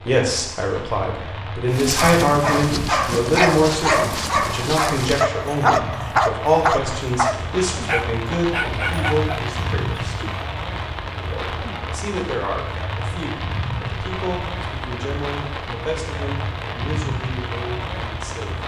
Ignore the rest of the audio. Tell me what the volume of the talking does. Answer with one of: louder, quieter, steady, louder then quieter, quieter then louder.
quieter.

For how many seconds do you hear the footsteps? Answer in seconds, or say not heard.
not heard.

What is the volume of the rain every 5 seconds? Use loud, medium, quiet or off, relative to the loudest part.
medium, loud, loud, loud.